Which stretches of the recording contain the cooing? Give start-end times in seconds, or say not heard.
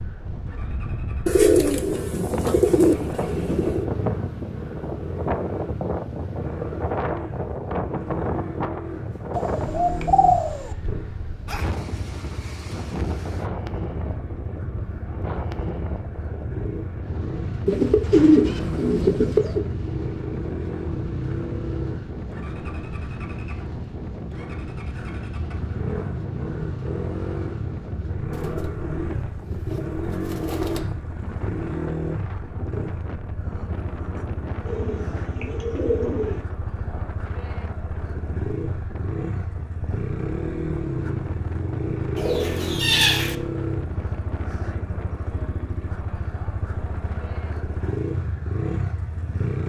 1.2-3.9, 9.3-10.8, 17.6-19.6, 28.3-30.8, 34.6-36.4, 42.1-43.4.